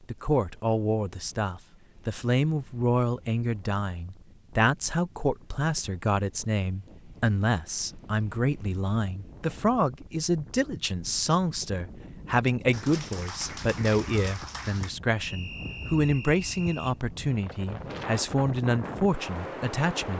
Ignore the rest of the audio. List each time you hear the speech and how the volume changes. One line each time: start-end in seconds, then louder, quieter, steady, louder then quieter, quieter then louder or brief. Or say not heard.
0.1-20.1 steady.